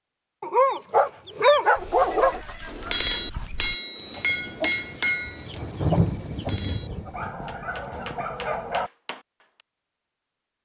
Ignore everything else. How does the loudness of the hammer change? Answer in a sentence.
The volume of the hammer goes down.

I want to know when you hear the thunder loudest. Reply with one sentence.
The loudest moment of the thunder is at 6 seconds.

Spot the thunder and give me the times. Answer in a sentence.
You can hear the thunder from 4.2 to 7.7 s.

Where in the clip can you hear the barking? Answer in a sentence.
The barking can be heard from 0.4 to 2.4 s and from 7.1 to 8.9 s.